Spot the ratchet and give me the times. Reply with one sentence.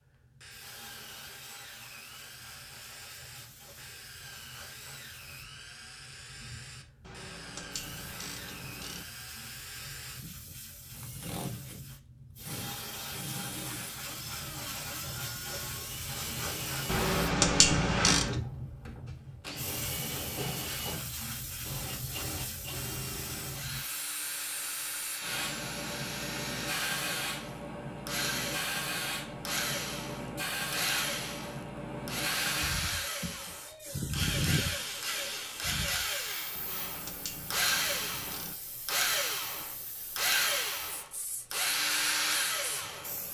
The ratchet can be heard from 7.0 to 9.1 s, from 16.9 to 18.4 s and from 36.5 to 38.5 s.